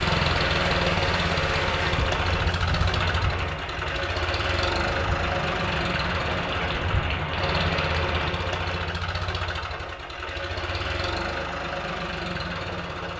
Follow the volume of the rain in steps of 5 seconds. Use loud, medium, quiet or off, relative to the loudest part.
loud, loud, off.